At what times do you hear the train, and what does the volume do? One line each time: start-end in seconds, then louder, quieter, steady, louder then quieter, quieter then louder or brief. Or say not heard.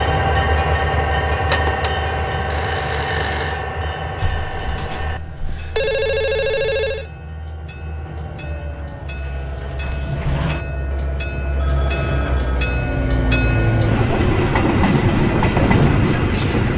0.0-16.7 quieter then louder.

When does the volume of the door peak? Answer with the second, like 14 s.
10 s.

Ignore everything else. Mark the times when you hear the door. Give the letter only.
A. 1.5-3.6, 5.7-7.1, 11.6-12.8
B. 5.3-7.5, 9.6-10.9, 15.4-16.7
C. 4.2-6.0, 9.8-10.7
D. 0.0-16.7
C.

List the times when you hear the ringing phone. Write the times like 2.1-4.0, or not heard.
1.5-3.6, 5.7-7.1, 11.6-12.8.